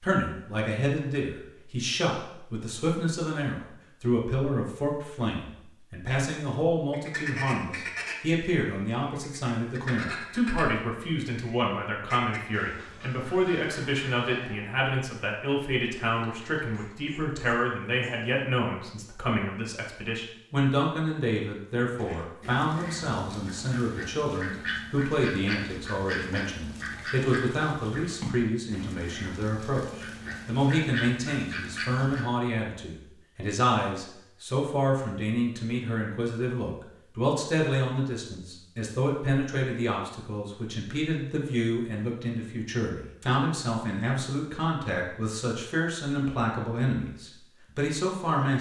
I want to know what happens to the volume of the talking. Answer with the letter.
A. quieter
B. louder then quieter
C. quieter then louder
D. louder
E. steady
E.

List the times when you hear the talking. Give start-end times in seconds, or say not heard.
0.0-48.5.